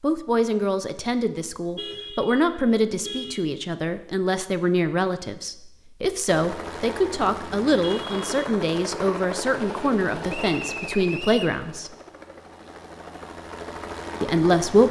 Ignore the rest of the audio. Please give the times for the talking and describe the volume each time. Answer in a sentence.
The talking can be heard from 0.0 to 11.9 s, at a steady volume; and briefly from 14.2 to 14.8 s.